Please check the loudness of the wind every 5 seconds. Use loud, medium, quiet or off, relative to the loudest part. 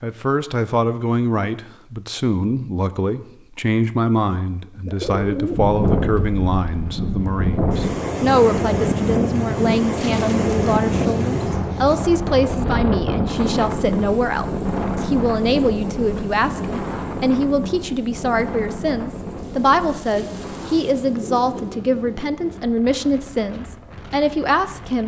off, loud, loud, medium, quiet.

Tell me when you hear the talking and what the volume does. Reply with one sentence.
The talking can be heard from 0.0 to 25.0 s, at a steady volume.